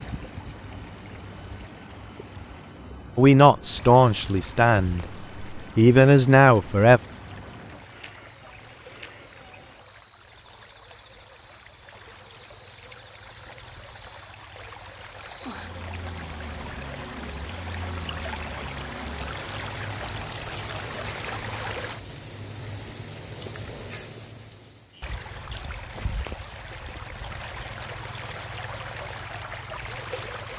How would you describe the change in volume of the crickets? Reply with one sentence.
The loudness of the crickets stays about the same.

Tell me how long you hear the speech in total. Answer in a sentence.
You can hear the speech for 4 seconds altogether.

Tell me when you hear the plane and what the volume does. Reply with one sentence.
You can't hear the plane here.